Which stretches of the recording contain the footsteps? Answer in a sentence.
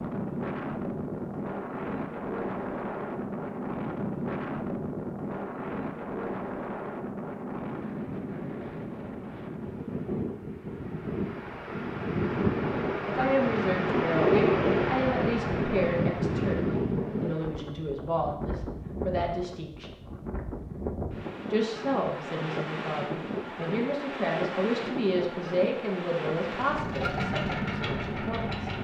You can't hear the footsteps here.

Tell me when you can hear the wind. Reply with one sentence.
You can hear the wind from 0.0 to 28.7 s.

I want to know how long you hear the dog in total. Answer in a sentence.
You can't hear the dog here.